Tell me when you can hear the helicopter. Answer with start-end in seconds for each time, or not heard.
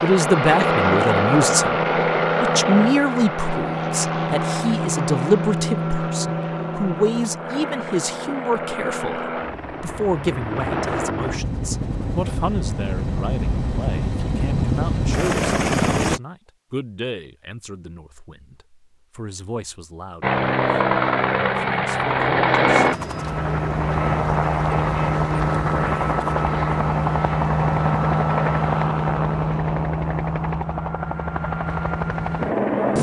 0.0-16.2, 20.2-32.9.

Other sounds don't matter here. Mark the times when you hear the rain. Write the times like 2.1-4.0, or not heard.
not heard.